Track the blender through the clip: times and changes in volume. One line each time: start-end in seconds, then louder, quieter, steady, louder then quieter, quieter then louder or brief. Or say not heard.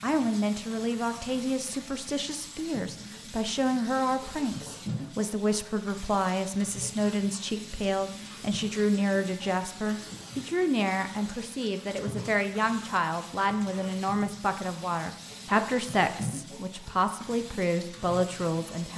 not heard.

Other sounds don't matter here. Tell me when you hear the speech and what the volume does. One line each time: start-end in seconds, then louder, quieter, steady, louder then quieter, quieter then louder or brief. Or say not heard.
0.0-18.9 steady.